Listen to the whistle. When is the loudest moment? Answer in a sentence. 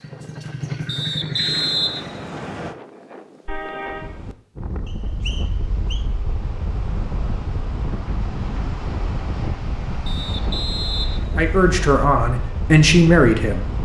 The loudest moment of the whistle is at 2 seconds.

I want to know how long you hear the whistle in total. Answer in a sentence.
The whistle can be heard for 5 seconds in total.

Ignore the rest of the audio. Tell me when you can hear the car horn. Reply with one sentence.
You can hear the car horn from 3.5 to 4.1 s.